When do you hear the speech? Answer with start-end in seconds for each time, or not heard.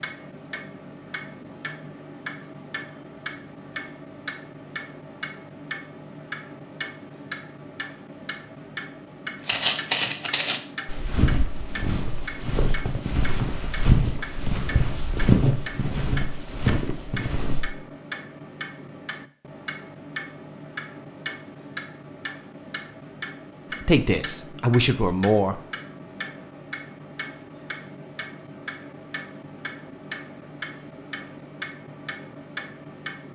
23.7-25.6.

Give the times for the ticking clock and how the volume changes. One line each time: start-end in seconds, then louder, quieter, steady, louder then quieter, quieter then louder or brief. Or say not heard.
0.0-33.3 steady.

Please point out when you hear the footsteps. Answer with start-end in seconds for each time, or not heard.
9.4-17.7.